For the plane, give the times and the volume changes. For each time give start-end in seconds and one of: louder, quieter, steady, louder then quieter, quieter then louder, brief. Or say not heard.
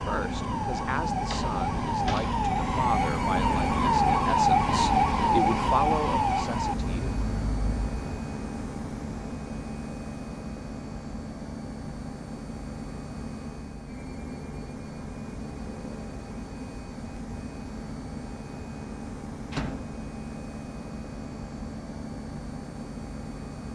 0.0-23.7 quieter.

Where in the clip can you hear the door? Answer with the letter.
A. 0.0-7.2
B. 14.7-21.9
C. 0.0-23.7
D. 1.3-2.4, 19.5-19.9
D.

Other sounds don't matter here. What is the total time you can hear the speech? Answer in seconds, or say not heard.
7 s.